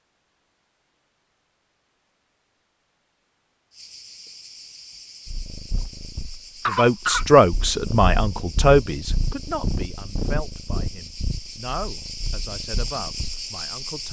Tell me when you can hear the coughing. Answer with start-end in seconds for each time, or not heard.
6.6-7.2.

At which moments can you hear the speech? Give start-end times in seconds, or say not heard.
6.7-14.0.